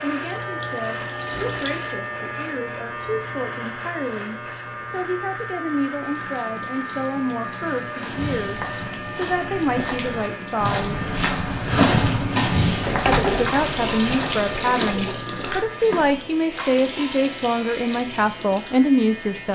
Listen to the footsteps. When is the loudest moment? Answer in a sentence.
The volume of the footsteps peaks at 12 seconds.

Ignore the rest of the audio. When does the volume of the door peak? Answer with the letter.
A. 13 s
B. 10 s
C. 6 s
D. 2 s
A.